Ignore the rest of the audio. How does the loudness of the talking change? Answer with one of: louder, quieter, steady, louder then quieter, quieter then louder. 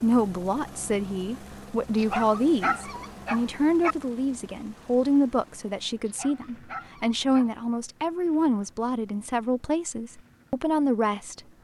steady.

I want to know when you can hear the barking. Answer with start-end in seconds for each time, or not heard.
1.9-4.0, 6.0-7.5.